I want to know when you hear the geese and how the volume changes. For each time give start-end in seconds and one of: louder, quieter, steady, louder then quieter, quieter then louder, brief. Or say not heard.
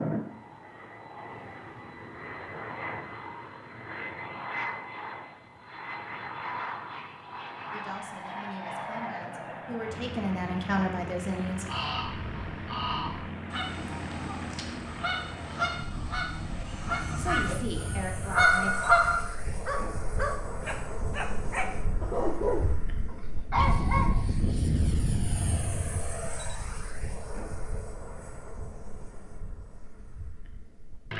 11.5-19.2 louder.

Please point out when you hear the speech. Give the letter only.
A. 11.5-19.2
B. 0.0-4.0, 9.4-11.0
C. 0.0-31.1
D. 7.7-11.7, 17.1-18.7
D.